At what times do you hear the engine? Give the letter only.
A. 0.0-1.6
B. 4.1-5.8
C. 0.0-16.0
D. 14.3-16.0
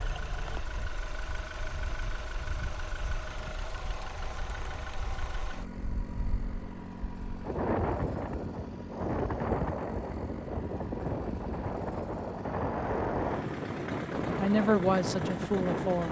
C.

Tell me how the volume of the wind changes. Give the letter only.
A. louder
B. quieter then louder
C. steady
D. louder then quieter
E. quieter
A.